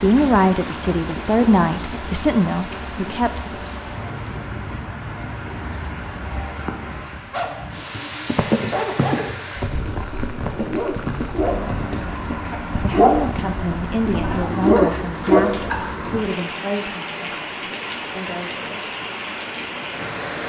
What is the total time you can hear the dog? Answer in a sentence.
The dog can be heard for 7 seconds in total.